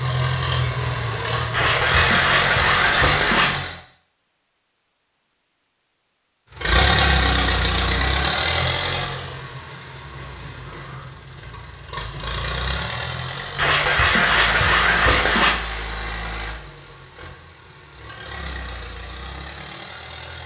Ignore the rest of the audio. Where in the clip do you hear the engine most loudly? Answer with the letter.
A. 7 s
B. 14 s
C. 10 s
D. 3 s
A.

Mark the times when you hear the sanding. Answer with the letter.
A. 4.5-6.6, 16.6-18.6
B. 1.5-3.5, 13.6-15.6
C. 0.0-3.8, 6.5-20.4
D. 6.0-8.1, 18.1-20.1
B.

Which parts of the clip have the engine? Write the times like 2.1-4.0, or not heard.
0.0-3.8, 6.5-20.4.